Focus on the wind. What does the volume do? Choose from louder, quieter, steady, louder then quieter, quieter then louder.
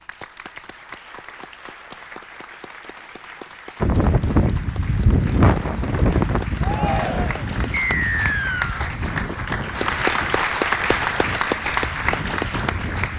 quieter.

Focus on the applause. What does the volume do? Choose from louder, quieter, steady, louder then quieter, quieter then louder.
louder.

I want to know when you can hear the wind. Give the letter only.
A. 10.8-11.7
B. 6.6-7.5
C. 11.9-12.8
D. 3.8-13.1
D.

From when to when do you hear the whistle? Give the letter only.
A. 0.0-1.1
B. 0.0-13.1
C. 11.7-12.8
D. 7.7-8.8
D.